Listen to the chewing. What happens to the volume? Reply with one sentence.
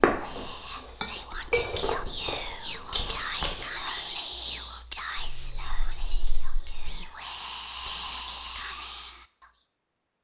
The loudness of the chewing goes up.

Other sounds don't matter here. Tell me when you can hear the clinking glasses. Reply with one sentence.
The clinking glasses can be heard from 1.0 to 1.9 s and from 5.2 to 7.0 s.